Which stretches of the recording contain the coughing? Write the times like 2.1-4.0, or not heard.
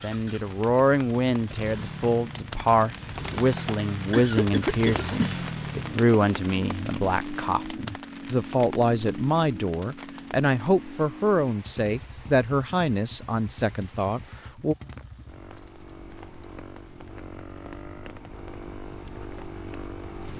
3.5-5.4.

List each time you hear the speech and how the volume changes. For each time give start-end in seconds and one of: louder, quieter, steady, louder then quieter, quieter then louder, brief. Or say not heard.
0.0-14.8 steady.